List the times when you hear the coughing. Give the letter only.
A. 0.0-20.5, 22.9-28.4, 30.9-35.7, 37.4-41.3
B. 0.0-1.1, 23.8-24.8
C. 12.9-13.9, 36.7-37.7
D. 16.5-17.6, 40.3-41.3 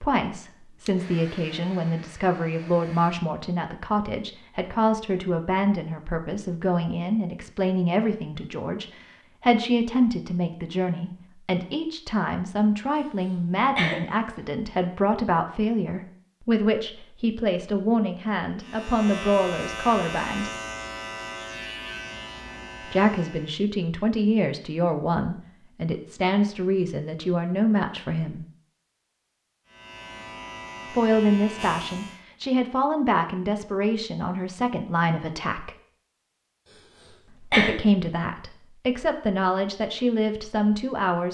C.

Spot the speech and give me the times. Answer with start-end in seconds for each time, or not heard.
0.0-20.5, 22.9-28.4, 30.9-35.7, 37.4-41.3.